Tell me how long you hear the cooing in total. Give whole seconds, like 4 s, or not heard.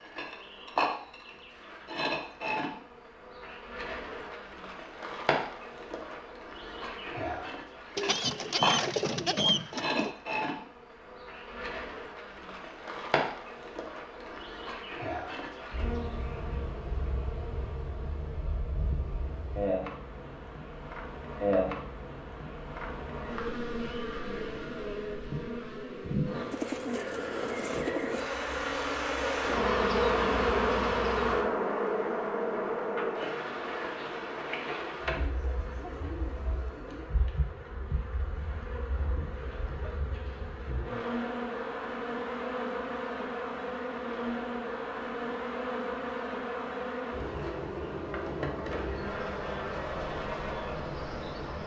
6 s.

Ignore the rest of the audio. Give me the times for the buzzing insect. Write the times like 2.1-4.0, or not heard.
0.0-51.6.